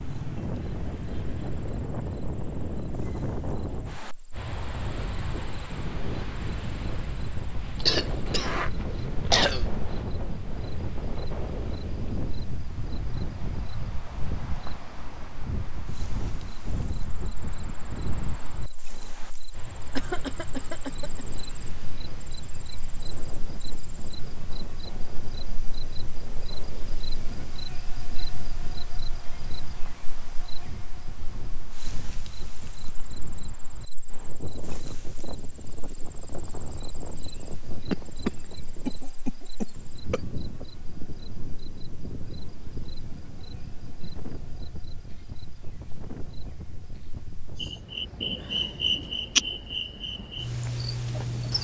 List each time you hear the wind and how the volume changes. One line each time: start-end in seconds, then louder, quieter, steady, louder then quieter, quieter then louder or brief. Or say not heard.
0.0-51.5 quieter.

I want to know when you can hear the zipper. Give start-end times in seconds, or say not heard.
8.1-9.8.